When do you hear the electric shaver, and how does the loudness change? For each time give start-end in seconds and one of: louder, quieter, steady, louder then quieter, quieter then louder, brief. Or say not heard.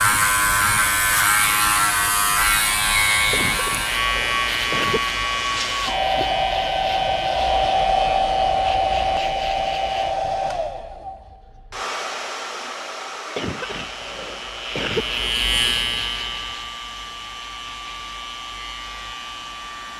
0.0-10.2 quieter
13.7-19.9 louder then quieter.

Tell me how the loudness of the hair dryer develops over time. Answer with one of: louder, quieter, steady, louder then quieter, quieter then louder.
louder then quieter.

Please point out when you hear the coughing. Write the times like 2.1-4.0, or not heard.
3.3-5.0, 13.3-15.1.